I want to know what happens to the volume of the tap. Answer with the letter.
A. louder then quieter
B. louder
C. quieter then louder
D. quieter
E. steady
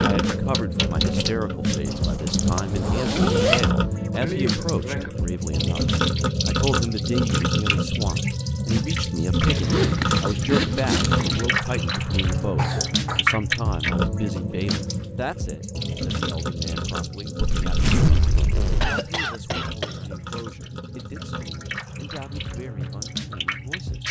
D.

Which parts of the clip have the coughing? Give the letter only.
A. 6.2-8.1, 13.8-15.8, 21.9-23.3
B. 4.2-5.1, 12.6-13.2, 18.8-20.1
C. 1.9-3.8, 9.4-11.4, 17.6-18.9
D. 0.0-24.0
B.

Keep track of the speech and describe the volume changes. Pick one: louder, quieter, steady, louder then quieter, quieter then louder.
quieter.